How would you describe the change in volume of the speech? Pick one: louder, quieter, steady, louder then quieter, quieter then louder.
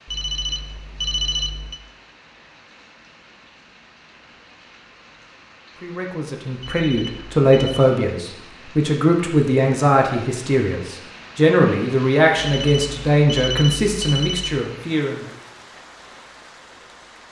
steady.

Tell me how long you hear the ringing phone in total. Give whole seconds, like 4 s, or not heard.
5 s.